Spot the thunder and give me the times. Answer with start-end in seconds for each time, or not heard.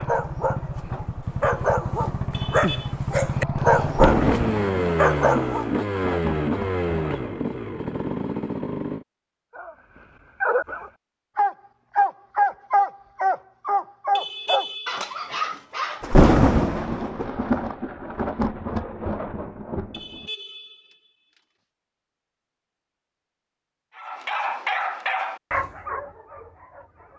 3.9-7.5, 16.0-20.0.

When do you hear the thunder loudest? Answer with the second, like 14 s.
16 s.